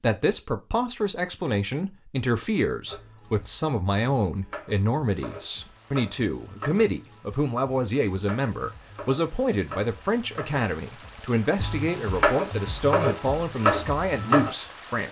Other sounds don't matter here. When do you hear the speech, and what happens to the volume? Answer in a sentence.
The speech can be heard from 0.0 to 15.0 s, at a steady volume.